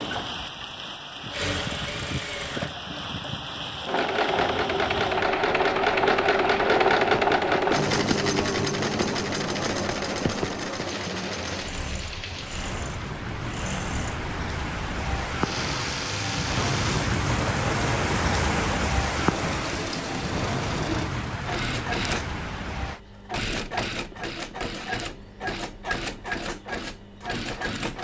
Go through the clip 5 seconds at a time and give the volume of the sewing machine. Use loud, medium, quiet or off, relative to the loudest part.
medium, loud, medium, medium, medium, medium.